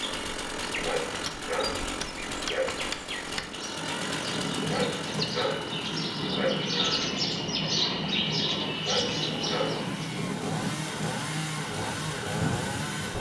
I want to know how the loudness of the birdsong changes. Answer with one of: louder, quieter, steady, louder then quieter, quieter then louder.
louder.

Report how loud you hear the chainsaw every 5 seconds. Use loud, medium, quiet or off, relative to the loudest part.
loud, medium, loud.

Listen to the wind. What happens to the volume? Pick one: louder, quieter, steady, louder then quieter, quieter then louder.
steady.